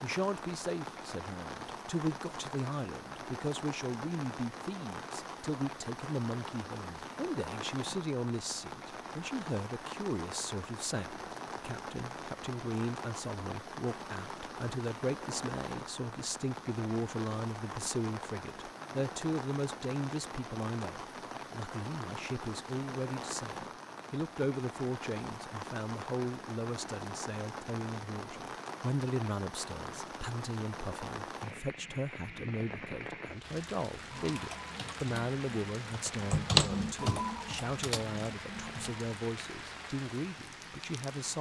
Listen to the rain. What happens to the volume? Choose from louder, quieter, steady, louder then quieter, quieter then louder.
steady.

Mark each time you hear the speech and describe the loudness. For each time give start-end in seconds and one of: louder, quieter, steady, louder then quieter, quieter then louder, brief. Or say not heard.
0.0-41.3 steady.